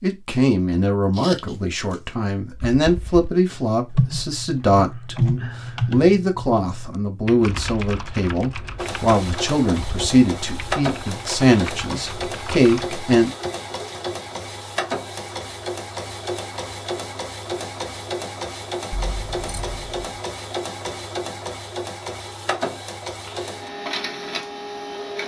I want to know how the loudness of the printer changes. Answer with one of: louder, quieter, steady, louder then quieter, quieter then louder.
steady.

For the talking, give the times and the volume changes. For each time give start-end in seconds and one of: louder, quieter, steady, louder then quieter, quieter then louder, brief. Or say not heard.
0.0-13.3 steady.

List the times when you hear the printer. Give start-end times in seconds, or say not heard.
8.8-25.2.